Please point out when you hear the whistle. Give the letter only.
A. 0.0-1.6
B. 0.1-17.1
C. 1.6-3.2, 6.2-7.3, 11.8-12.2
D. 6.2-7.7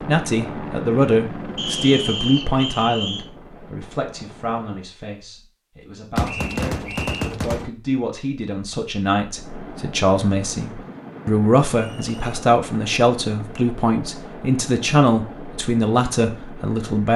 C.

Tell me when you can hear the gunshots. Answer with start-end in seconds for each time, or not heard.
6.2-7.7.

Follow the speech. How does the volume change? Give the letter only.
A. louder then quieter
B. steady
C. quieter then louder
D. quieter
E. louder
C.